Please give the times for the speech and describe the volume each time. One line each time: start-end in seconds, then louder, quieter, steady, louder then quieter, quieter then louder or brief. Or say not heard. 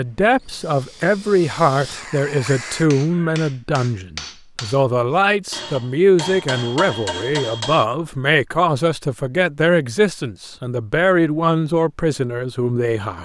0.0-13.2 steady.